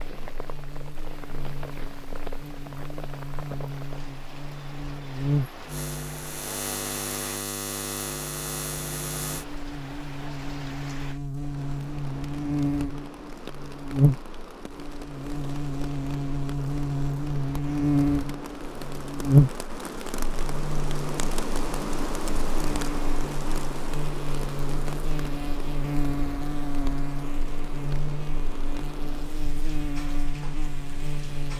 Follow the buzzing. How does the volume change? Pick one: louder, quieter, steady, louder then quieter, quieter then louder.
louder then quieter.